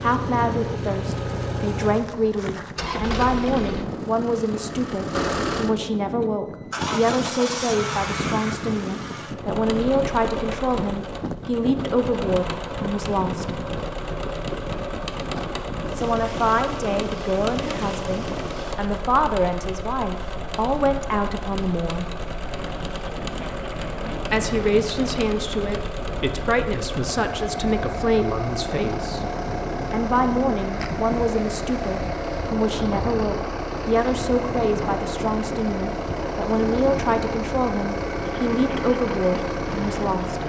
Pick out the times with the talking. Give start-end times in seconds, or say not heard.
0.0-13.6, 15.9-22.1, 24.3-29.2, 29.9-40.4.